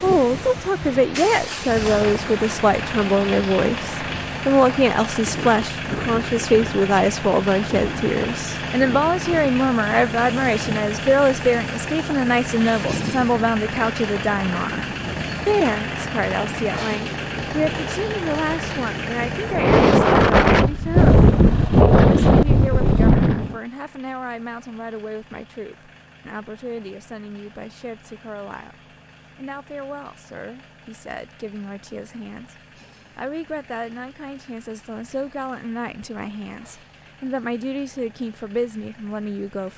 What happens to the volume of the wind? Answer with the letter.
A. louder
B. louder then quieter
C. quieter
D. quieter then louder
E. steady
A.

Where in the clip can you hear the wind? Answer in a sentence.
You can hear the wind from 0.0 to 23.6 s.